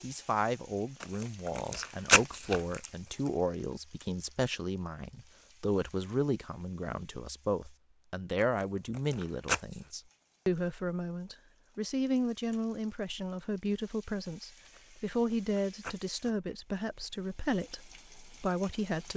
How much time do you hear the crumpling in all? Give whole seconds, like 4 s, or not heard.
5 s.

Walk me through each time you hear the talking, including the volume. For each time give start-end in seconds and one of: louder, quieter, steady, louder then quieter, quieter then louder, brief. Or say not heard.
0.0-19.1 steady.